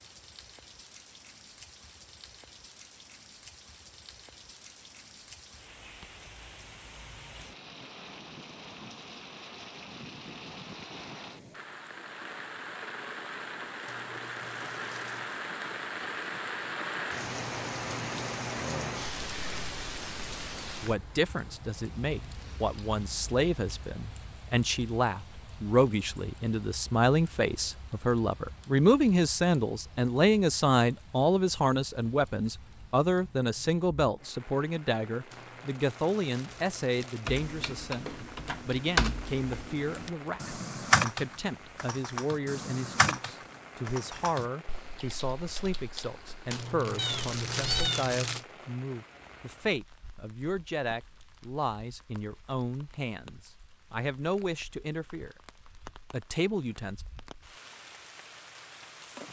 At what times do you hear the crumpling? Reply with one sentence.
You can hear the crumpling from 13.8 to 15.4 s, from 35.3 to 37.4 s and from 46.5 to 48.5 s.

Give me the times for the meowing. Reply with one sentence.
You can hear the meowing from 47.0 to 48.0 s.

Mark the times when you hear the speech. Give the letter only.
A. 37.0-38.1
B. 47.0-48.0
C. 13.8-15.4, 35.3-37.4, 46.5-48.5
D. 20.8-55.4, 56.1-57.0
D.